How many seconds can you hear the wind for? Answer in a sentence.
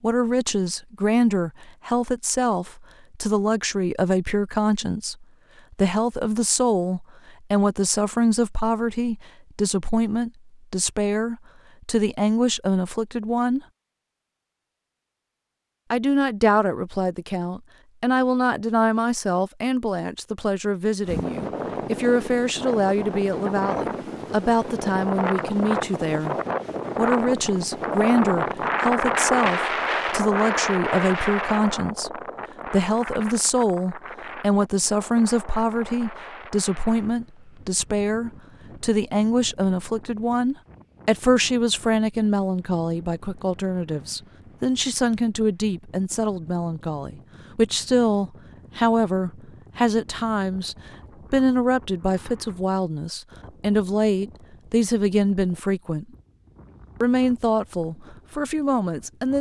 You can hear the wind for 38 seconds altogether.